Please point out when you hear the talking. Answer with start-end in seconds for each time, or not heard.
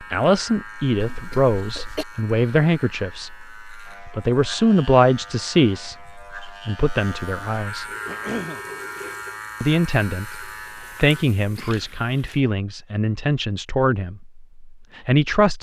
0.0-7.8, 9.6-15.5.